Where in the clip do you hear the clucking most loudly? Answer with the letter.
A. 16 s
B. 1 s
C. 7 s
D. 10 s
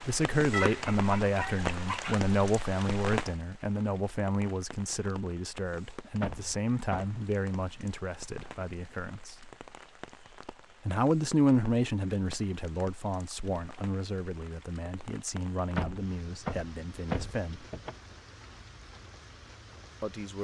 B.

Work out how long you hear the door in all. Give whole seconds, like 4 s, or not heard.
3 s.